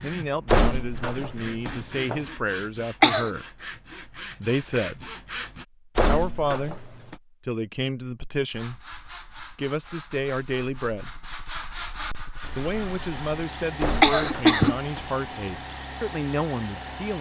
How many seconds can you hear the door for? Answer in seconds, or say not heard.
4 s.